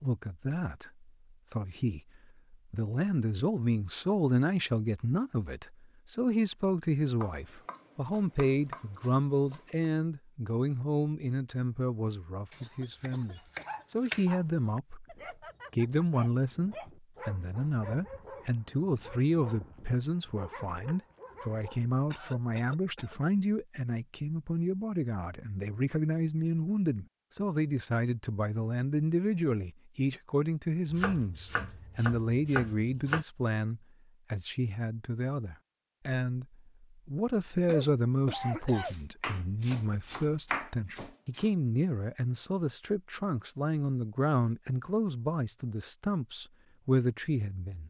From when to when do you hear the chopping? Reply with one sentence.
The chopping can be heard from 7.2 to 9.9 s, from 12.5 to 14.2 s, from 30.9 to 33.2 s and from 38.8 to 41.5 s.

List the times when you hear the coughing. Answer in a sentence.
The coughing can be heard from 12.6 to 13.8 s, from 22.1 to 23.2 s and from 37.6 to 39.0 s.